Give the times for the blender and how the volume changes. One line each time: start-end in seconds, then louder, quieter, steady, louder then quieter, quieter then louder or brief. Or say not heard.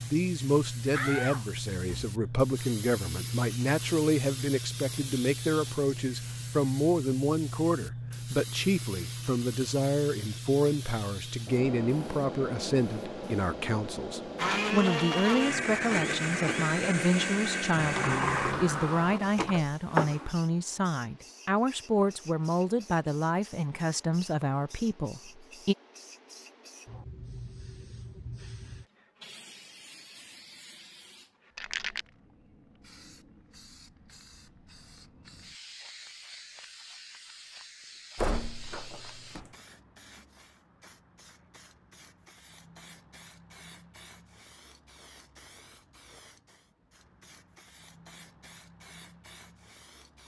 14.3-18.6 steady.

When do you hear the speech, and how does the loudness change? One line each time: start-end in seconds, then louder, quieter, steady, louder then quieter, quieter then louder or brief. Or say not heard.
0.0-25.8 steady.